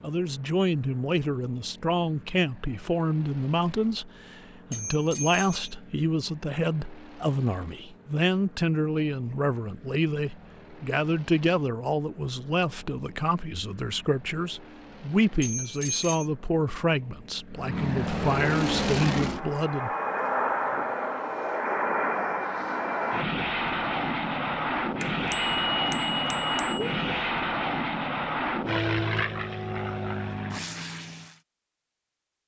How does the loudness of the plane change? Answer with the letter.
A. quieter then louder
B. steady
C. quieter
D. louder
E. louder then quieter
D.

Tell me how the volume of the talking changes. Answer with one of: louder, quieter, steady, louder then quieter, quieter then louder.
steady.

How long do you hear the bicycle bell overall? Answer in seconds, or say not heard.
4 s.